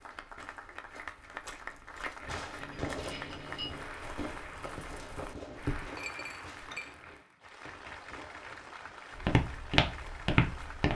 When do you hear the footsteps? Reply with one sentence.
You can hear the footsteps from 0.0 to 5.9 s and from 9.2 to 10.9 s.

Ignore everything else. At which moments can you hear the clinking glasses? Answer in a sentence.
You can hear the clinking glasses from 2.6 to 3.9 s and from 5.8 to 7.0 s.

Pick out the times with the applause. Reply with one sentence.
The applause can be heard from 0.0 to 10.9 s.